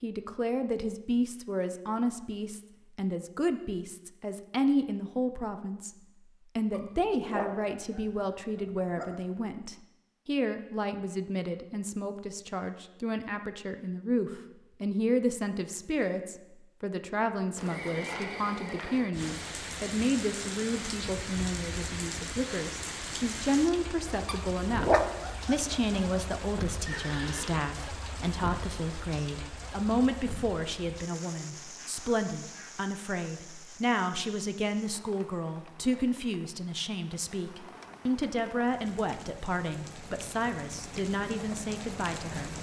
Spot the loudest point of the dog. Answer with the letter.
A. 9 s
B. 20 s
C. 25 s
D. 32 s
C.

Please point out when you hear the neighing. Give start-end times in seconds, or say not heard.
17.6-19.1, 26.9-27.6.